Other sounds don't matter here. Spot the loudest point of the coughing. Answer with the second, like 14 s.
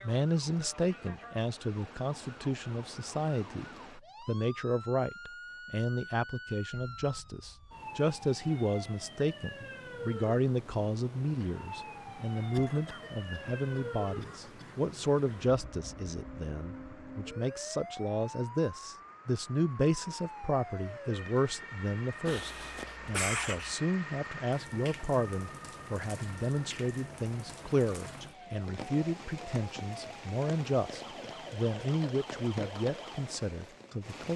23 s.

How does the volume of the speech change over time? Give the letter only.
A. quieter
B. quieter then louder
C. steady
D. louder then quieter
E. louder
C.